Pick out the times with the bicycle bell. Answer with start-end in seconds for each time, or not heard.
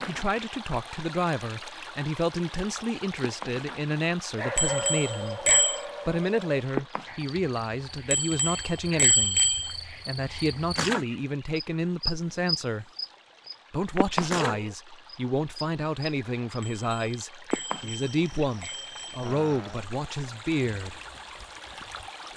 4.5-5.8, 8.1-9.8, 16.6-19.2.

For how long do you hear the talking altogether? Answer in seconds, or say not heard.
20 s.